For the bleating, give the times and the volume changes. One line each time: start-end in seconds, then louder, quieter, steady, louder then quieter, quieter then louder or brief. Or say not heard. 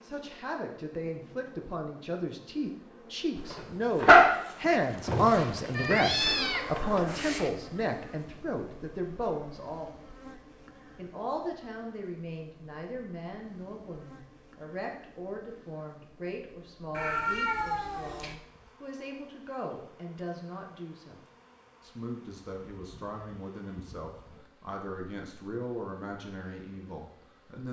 not heard.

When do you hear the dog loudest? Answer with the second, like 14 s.
4 s.